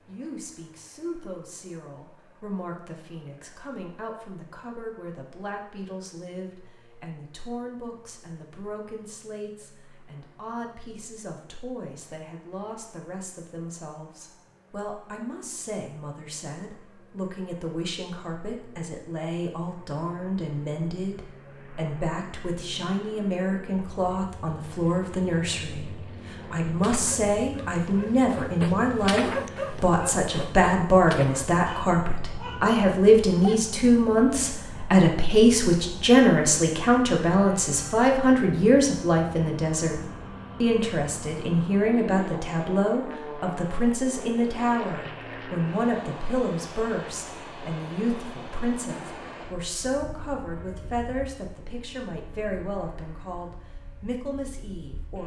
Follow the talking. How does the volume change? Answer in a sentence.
The loudness of the talking goes up, then down.